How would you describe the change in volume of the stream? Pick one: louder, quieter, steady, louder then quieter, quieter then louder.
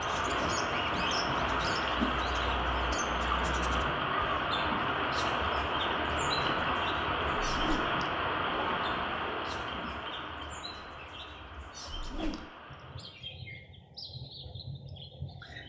quieter.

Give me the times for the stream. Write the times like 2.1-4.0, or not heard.
0.0-13.2.